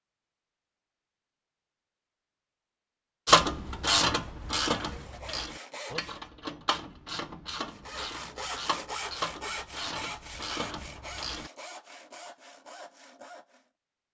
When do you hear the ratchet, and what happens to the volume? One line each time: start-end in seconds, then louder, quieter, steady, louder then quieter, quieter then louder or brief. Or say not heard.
3.2-11.5 quieter.